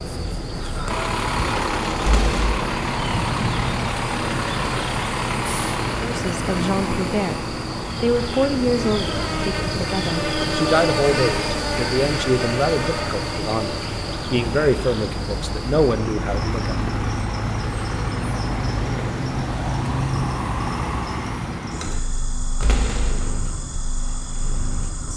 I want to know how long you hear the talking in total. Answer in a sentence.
The talking can be heard for 11 seconds in total.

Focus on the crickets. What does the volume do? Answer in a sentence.
The volume of the crickets goes up, then down.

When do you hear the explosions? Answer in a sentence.
You can hear the explosions from 2.0 to 2.6 s and from 22.6 to 23.4 s.